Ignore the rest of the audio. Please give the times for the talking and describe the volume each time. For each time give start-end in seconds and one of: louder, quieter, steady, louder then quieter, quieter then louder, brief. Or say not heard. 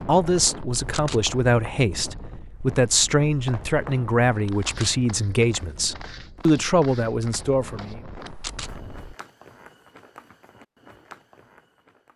0.1-8.0 steady.